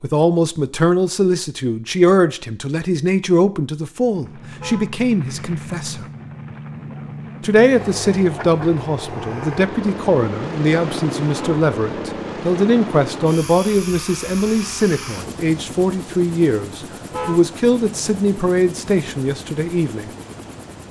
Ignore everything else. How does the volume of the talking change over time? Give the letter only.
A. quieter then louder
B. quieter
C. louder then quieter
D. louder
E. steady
E.